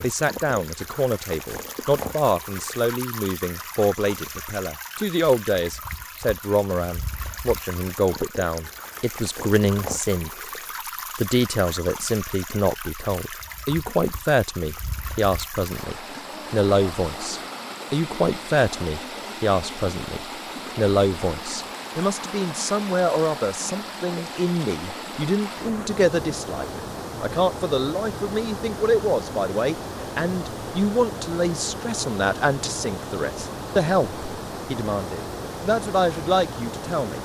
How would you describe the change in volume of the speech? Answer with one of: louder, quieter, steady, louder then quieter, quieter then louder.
steady.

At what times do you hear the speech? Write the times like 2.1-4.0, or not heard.
0.0-10.3, 11.2-37.2.